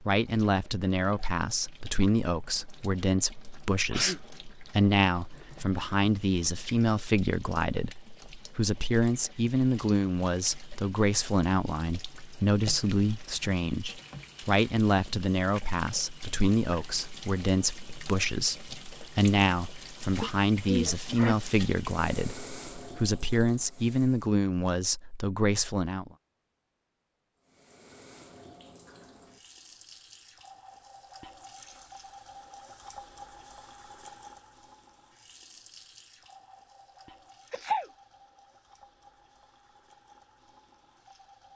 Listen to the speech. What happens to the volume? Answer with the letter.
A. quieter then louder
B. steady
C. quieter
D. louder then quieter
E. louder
B.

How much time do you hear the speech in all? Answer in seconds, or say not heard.
26 s.